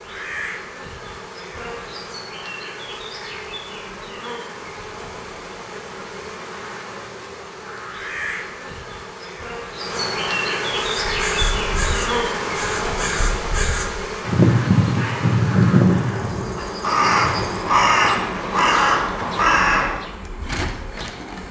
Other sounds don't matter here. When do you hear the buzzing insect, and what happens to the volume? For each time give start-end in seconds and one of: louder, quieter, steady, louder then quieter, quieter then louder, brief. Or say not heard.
0.0-21.4 louder then quieter.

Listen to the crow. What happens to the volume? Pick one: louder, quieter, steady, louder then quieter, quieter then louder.
louder.